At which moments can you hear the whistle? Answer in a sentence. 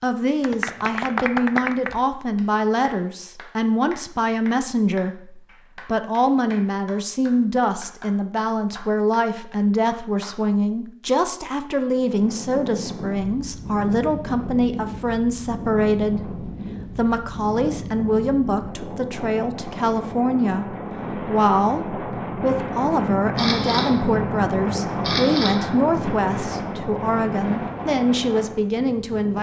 The whistle can't be heard in this clip.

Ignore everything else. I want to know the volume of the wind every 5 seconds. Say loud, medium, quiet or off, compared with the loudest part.
off, off, medium, medium, loud, loud.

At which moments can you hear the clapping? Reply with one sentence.
You can hear the clapping from 0.4 to 10.3 s.